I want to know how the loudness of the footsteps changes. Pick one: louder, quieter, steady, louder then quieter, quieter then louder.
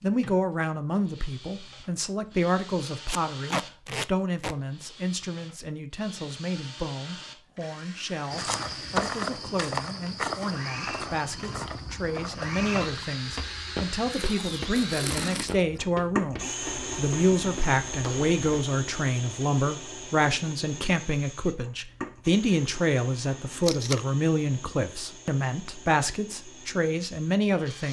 quieter.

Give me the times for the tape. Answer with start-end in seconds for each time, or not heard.
3.0-4.5, 14.2-15.8, 23.6-24.1.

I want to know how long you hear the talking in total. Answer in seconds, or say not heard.
28 s.